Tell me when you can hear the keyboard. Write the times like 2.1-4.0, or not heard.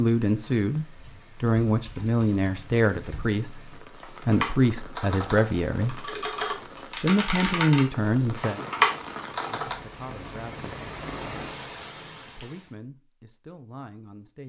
0.9-3.4, 4.0-9.8.